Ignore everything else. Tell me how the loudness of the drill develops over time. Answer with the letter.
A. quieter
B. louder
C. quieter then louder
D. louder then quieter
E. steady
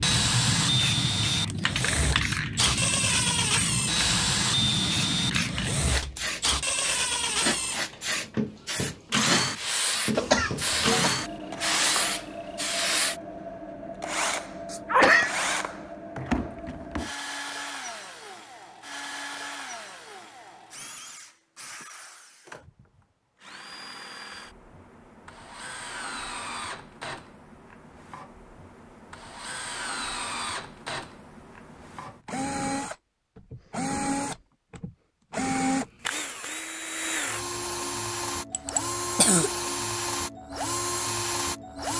C.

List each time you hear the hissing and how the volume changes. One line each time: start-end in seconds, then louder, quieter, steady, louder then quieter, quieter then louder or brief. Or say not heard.
0.0-13.2 steady.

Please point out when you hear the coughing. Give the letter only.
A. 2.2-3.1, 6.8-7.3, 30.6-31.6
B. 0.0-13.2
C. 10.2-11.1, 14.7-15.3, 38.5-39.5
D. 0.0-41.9
C.